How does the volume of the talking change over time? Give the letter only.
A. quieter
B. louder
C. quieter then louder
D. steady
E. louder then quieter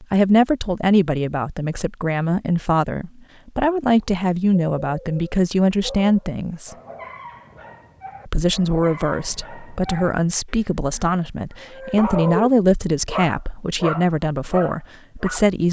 D.